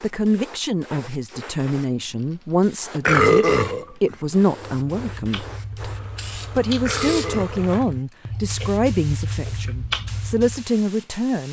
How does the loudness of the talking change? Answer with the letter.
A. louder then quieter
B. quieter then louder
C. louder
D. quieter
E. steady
E.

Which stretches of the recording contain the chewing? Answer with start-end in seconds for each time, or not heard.
4.8-10.7.